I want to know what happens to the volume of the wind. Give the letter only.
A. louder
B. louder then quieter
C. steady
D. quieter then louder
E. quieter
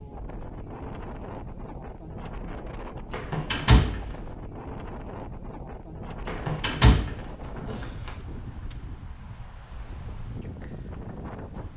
C.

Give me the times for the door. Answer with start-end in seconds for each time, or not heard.
3.1-4.0, 6.2-8.1.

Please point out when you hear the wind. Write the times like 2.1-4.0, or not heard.
0.0-11.7.